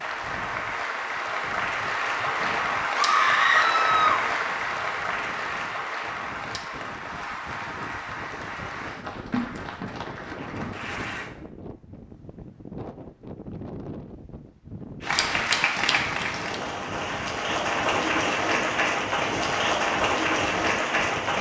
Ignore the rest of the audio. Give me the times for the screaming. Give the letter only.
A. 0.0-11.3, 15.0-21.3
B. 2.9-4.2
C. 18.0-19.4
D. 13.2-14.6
B.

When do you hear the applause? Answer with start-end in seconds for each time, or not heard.
0.0-11.3, 15.0-21.3.